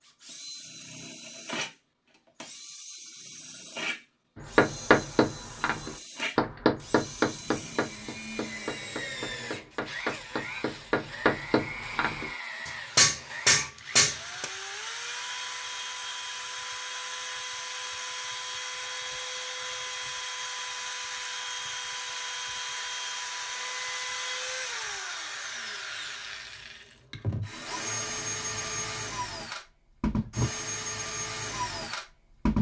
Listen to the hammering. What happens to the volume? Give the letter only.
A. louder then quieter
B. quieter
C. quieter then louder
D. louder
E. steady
C.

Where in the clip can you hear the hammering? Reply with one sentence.
You can hear the hammering from 4.5 to 14.4 s.